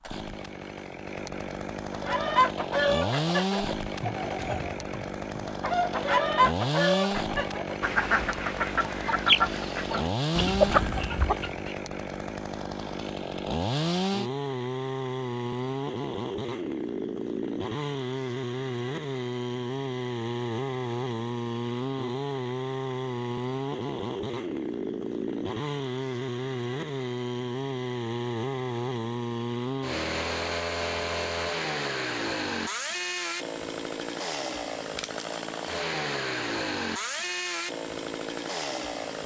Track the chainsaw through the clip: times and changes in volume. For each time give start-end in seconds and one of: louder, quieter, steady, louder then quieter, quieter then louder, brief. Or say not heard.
0.0-39.2 steady.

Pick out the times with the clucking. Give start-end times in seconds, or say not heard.
1.9-11.7.